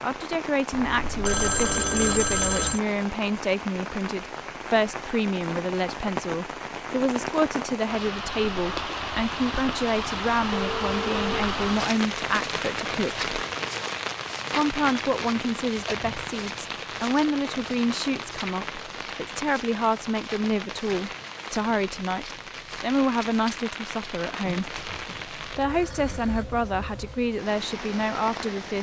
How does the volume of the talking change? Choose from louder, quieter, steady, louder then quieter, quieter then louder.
steady.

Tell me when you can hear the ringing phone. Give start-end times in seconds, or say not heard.
0.7-2.8, 10.5-11.4, 24.4-26.4.